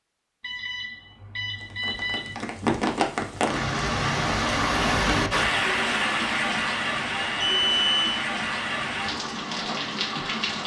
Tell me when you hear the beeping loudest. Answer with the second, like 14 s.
8 s.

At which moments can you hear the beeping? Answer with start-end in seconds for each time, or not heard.
0.4-2.4, 7.2-8.2.